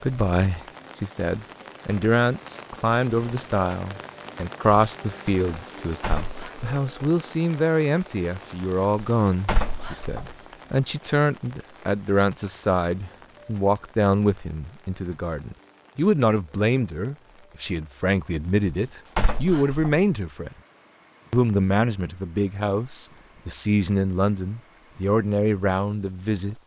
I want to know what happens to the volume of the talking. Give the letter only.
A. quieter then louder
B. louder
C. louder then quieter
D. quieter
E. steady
E.